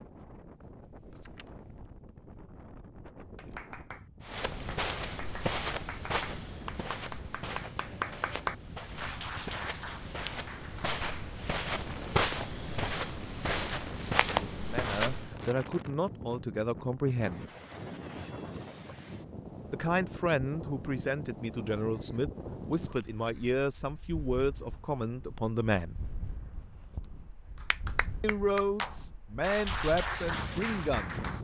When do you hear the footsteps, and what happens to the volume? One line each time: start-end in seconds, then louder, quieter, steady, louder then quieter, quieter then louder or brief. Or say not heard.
4.2-15.4 quieter then louder.